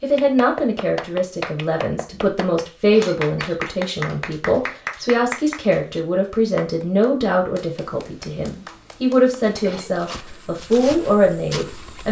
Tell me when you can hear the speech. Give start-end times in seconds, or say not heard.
0.0-12.0.